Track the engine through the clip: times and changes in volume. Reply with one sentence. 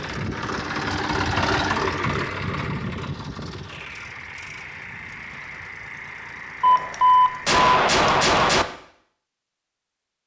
You can hear the engine from 0.0 to 7.7 s, getting quieter.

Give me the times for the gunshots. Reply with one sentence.
You can hear the gunshots from 6.6 to 8.7 s.